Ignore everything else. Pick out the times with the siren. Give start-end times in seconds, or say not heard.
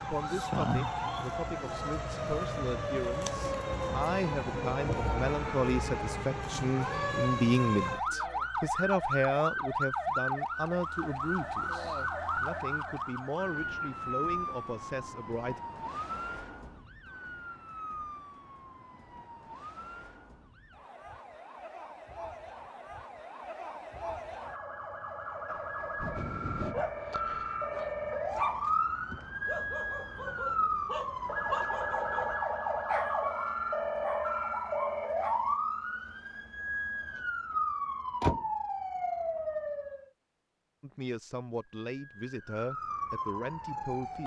0.0-40.0, 41.6-44.2.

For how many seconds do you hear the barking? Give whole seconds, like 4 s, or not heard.
10 s.